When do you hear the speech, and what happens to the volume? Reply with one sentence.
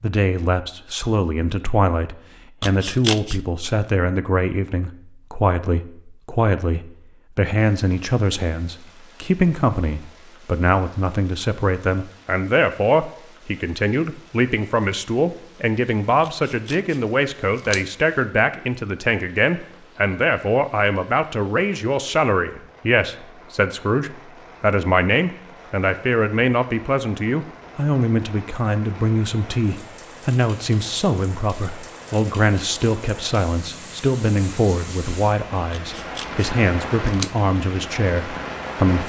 The speech can be heard from 0.0 to 39.0 s, at a steady volume.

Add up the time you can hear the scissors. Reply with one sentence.
You can hear the scissors for 4 seconds altogether.